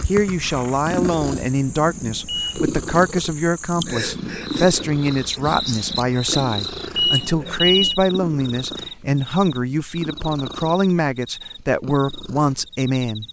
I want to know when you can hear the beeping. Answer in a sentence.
You can hear the beeping from 2.2 to 2.7 s and from 7.0 to 8.0 s.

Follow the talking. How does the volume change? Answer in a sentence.
The volume of the talking stays about the same.